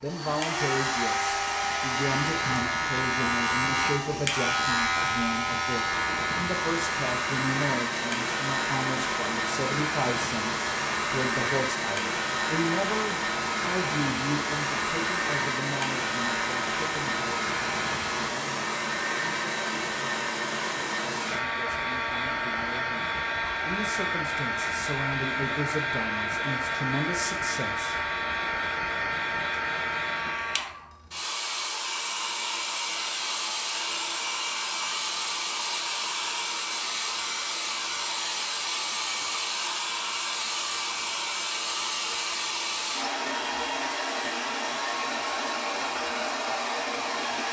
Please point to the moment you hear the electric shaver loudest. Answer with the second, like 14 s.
5 s.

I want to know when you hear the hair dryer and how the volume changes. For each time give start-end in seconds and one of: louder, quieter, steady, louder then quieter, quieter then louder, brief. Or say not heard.
0.0-47.4 steady.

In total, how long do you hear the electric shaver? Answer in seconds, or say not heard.
18 s.